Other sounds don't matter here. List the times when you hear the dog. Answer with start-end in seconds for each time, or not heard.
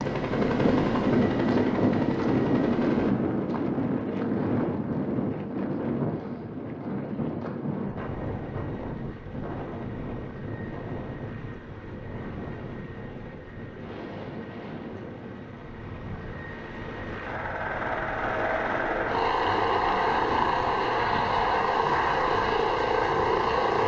not heard.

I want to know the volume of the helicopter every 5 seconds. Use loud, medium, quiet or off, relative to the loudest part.
medium, quiet, quiet, medium, loud.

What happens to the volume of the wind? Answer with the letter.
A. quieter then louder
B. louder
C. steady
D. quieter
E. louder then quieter
D.